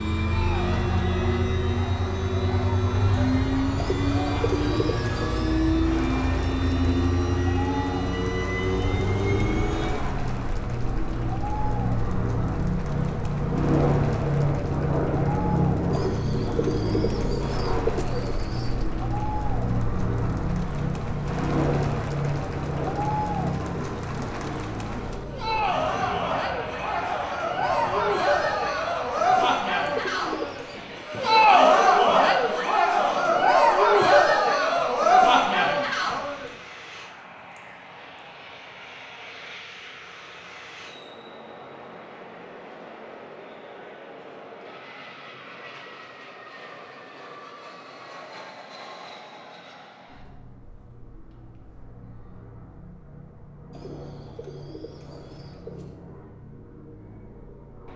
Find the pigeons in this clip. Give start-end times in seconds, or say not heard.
3.8-5.4, 15.9-18.9, 29.3-30.9, 53.7-56.0.